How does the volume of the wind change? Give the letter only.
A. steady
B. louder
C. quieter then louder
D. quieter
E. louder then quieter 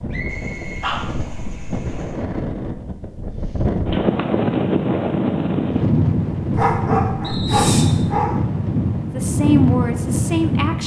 B.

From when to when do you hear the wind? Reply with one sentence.
The wind can be heard from 0.0 to 10.8 s.